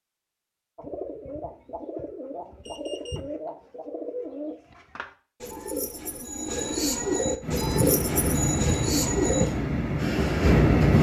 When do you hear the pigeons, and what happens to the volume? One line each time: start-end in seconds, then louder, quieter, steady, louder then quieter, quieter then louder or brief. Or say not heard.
0.8-9.5 louder.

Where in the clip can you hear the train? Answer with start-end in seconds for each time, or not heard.
7.4-10.9.